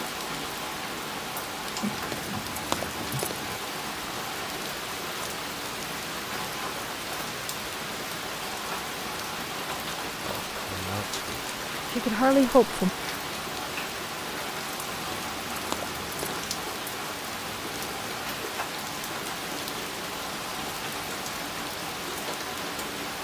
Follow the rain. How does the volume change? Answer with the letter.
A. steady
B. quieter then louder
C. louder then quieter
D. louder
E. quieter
A.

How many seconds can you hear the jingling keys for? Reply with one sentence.
The jingling keys can be heard for 3 seconds in total.